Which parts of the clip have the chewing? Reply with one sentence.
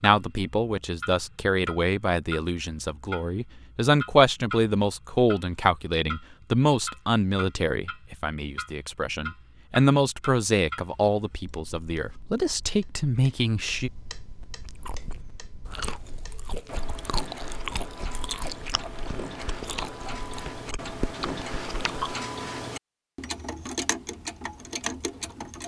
You can hear the chewing from 14.7 to 22.2 s.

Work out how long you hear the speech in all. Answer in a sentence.
The speech can be heard for 14 seconds in total.